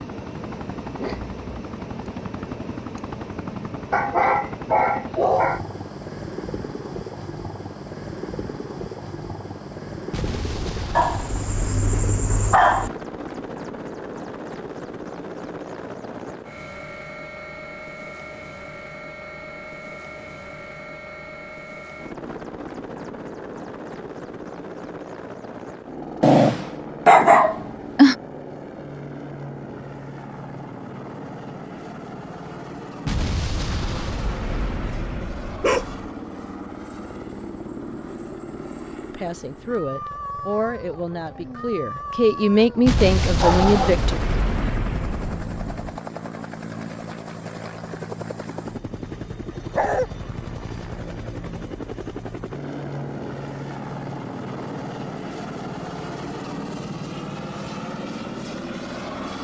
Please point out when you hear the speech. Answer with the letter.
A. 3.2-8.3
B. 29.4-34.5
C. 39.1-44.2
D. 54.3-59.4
C.